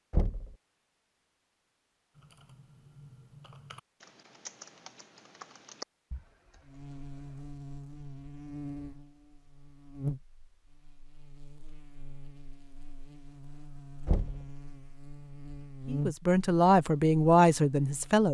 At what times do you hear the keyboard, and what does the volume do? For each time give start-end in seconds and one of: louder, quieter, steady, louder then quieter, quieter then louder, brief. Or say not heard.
2.1-7.4 louder then quieter.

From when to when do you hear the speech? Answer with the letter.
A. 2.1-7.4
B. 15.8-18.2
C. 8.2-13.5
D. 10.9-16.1
B.